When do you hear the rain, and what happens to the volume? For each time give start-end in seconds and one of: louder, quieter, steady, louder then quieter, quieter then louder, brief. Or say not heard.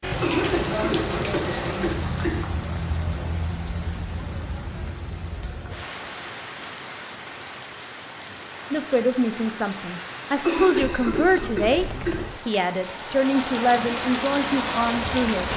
0.0-15.5 quieter then louder.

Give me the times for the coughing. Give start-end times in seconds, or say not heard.
0.2-2.4, 10.4-12.2.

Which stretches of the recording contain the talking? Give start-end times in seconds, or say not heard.
8.7-11.8, 12.4-15.4.